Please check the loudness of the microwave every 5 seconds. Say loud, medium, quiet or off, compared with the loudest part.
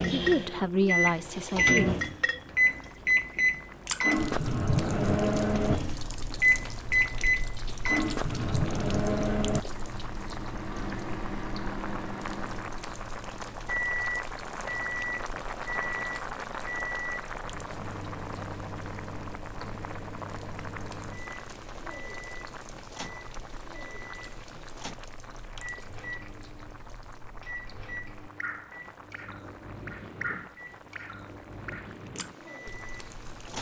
loud, loud, medium, quiet, quiet, quiet, quiet.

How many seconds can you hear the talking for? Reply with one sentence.
You can hear the talking for 2 seconds altogether.